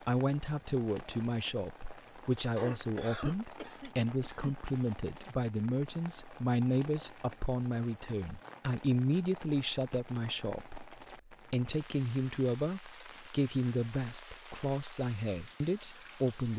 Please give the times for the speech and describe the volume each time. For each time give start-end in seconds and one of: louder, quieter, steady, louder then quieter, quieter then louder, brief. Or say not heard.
0.1-16.5 steady.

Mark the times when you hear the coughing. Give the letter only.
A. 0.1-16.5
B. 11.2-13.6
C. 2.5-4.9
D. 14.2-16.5
C.